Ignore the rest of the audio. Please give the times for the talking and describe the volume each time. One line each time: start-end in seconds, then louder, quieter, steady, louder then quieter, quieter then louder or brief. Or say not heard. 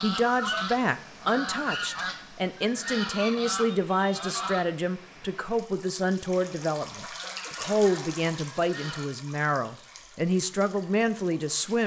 0.0-11.8 steady.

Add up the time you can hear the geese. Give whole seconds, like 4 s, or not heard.
7 s.